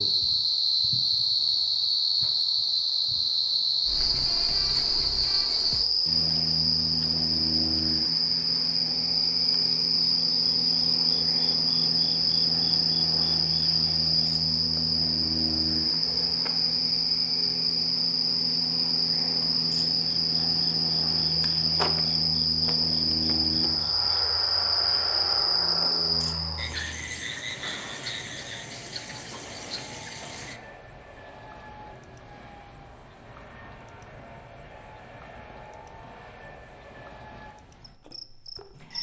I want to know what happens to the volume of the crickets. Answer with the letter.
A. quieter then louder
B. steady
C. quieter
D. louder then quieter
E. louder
C.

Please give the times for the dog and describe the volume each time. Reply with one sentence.
The dog can't be heard in this clip.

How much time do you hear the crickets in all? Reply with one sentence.
You can hear the crickets for 39 seconds altogether.